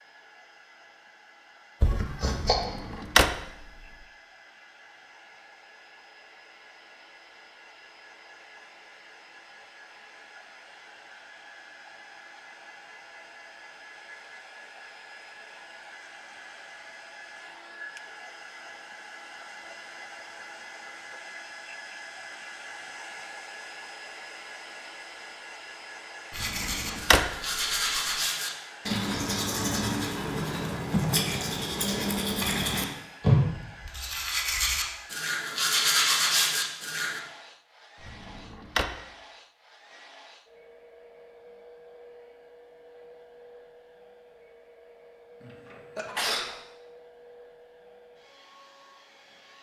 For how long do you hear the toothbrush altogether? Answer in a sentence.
The toothbrush can be heard for 11 seconds in total.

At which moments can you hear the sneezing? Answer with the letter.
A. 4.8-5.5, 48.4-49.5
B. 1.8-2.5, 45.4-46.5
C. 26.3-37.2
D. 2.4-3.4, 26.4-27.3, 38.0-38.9
B.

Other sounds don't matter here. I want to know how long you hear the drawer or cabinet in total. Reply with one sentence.
The drawer or cabinet can be heard for 3 seconds in total.